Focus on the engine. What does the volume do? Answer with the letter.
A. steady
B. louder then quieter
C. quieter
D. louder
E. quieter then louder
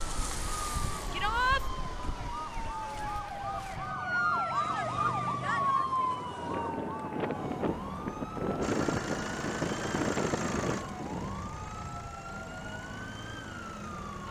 C.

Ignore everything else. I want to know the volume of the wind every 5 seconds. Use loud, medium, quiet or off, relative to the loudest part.
medium, loud, loud.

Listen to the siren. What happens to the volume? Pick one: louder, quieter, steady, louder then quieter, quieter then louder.
louder then quieter.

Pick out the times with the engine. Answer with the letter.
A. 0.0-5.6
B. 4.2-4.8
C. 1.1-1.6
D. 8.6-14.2
D.